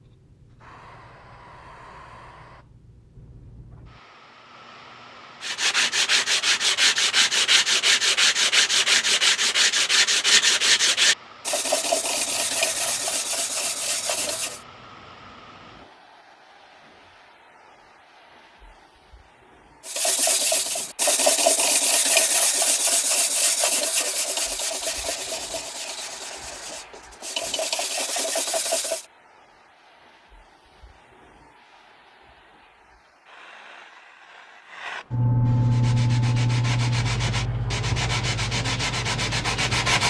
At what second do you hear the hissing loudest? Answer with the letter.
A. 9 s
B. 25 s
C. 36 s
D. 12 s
C.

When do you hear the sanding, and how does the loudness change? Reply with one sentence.
The sanding can be heard from 5.4 to 14.6 s, getting quieter; from 19.9 to 29.1 s, getting quieter then louder; and from 35.6 to 40.0 s, getting louder.